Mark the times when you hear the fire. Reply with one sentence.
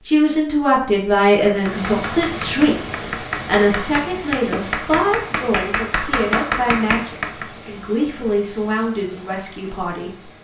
The fire can't be heard in this clip.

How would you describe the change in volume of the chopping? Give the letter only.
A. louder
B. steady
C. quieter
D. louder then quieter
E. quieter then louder
A.